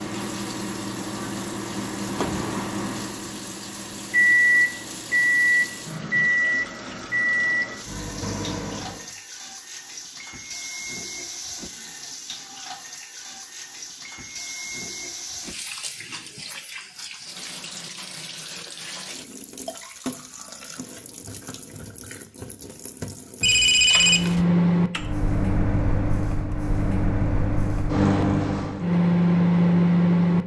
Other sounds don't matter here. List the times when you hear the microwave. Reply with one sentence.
The microwave can be heard from 0.0 to 9.1 s and from 23.9 to 30.4 s.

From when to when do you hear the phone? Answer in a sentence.
You can hear the phone from 23.4 to 24.4 s.